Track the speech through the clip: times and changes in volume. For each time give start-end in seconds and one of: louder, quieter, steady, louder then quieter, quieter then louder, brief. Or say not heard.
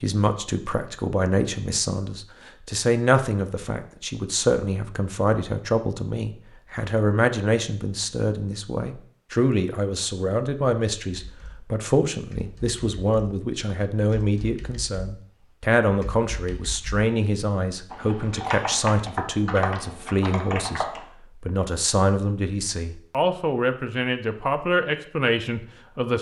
0.0-26.1 steady.